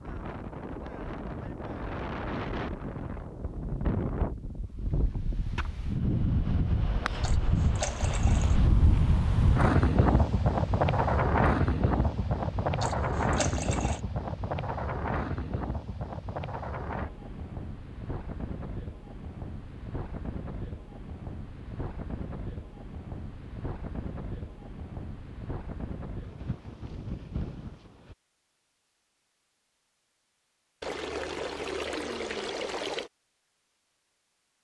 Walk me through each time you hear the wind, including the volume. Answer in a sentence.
You can hear the wind from 0.0 to 28.1 s, getting louder then quieter.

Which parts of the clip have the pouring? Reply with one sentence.
The pouring can be heard from 7.2 to 8.6 s, from 12.8 to 14.0 s and from 30.8 to 33.1 s.